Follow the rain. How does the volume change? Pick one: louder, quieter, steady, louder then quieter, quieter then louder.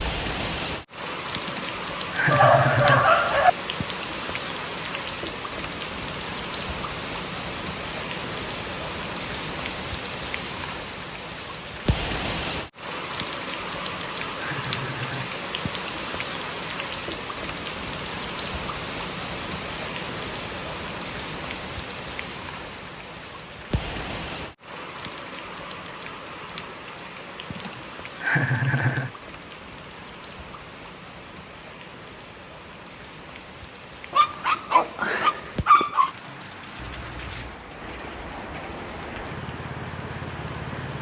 quieter.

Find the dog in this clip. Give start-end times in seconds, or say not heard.
2.3-3.5, 34.1-36.1.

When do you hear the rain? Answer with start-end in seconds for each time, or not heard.
0.0-40.9.